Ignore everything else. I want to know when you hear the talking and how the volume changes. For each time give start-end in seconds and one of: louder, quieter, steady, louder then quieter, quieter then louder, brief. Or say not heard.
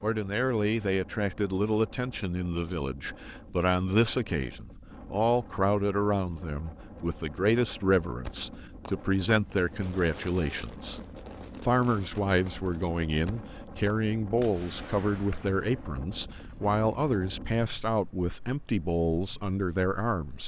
0.0-11.0 steady
11.6-20.4 steady.